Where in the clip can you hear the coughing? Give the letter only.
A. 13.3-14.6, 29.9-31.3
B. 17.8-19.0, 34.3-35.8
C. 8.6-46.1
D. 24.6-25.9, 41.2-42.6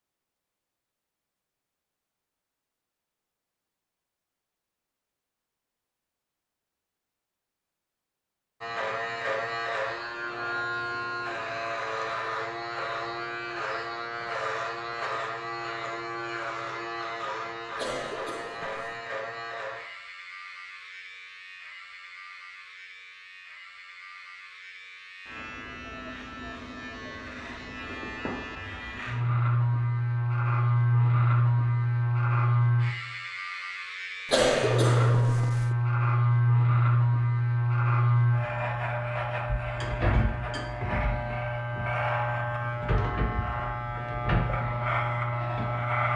B.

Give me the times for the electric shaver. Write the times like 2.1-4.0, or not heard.
8.6-46.1.